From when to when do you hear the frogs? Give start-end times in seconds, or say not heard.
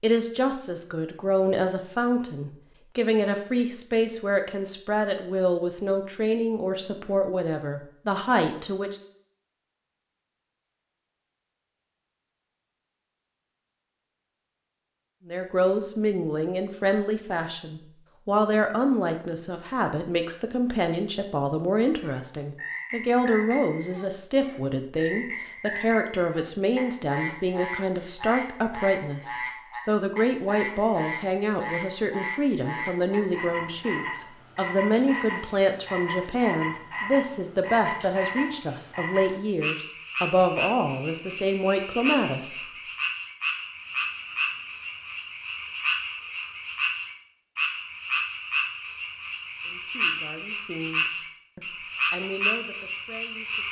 21.9-53.6.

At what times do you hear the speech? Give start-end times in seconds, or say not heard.
0.0-9.0, 15.2-42.6, 49.6-53.6.